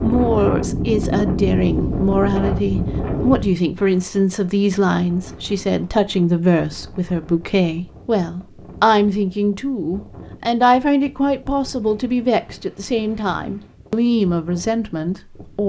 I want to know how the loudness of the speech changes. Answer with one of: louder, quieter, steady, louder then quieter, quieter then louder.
steady.